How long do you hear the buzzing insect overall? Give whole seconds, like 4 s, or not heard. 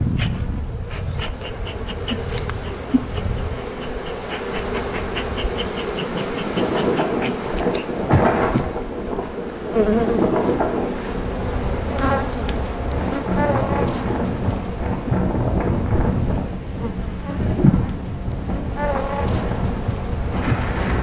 21 s.